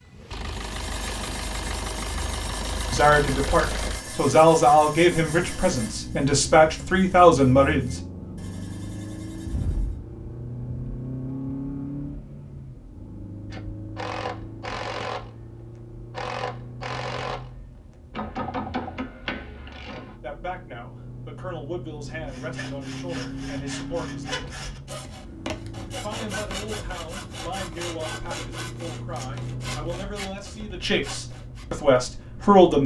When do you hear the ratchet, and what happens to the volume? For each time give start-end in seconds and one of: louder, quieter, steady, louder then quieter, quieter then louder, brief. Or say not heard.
13.5-20.1 steady.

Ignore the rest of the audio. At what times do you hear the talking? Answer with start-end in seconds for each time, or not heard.
2.9-8.0, 20.2-24.6, 25.9-32.8.